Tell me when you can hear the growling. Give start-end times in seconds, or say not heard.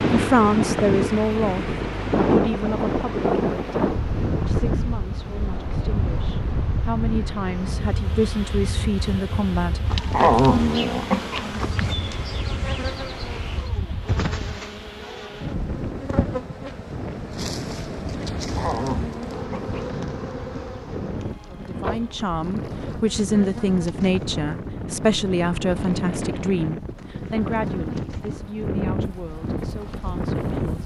10.1-11.9, 18.6-19.8.